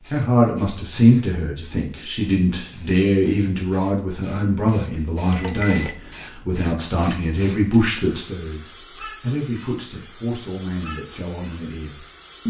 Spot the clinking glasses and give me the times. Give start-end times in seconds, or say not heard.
5.3-6.0.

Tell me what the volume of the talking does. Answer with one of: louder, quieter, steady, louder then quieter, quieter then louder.
quieter.